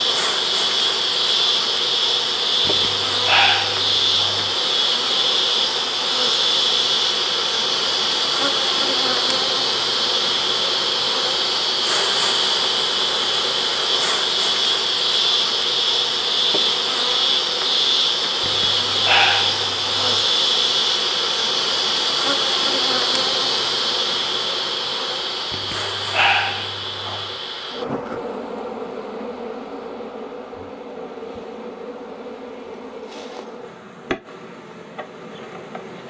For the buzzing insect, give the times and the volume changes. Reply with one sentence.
The buzzing insect can be heard from 0.0 to 36.0 s, getting quieter.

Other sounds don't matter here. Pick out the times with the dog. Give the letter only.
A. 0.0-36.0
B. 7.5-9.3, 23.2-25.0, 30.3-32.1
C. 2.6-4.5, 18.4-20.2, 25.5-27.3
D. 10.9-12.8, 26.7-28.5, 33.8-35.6
C.